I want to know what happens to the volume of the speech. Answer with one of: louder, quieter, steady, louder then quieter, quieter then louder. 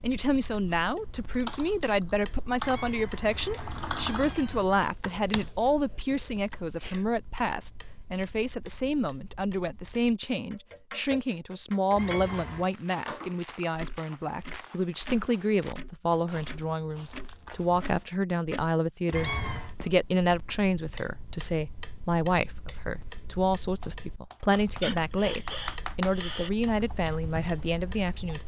steady.